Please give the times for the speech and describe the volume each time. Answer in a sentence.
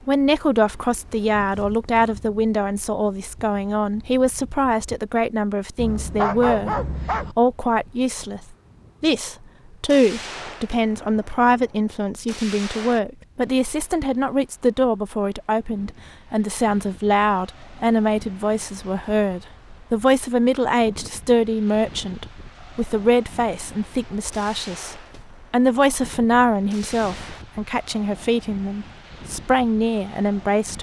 The speech can be heard from 0.1 to 8.4 s, at a steady volume; and from 9.0 to 30.7 s, at a steady volume.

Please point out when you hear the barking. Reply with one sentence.
You can hear the barking from 5.8 to 7.3 s.